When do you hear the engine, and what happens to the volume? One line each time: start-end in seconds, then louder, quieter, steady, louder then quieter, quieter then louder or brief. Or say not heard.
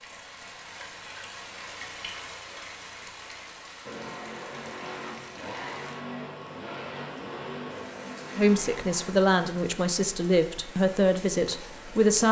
3.8-9.2 steady.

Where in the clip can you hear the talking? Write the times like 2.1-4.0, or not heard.
8.3-12.2.